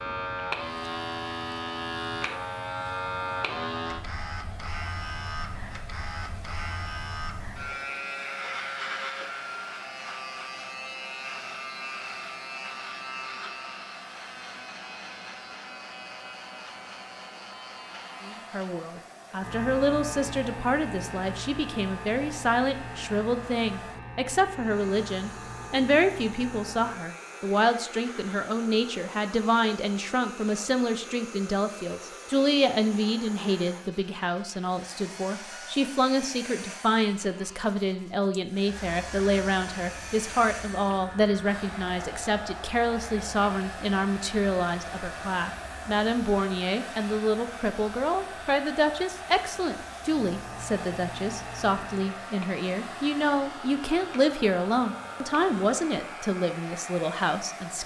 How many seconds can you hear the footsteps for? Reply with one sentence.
You can't hear the footsteps here.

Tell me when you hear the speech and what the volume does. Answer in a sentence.
The speech can be heard from 18.2 to 57.8 s, at a steady volume.